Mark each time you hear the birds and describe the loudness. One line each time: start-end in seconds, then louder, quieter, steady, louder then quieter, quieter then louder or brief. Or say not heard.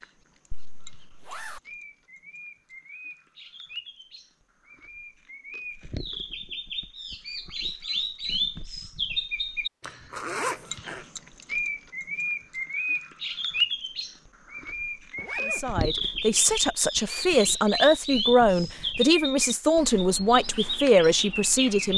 0.0-21.9 louder.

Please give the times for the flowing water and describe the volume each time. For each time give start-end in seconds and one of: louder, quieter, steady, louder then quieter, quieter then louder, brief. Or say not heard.
not heard.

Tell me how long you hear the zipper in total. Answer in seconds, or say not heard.
3 s.